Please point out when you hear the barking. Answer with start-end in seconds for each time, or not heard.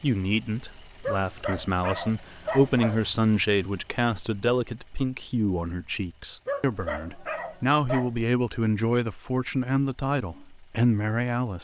1.0-3.0, 6.5-8.1.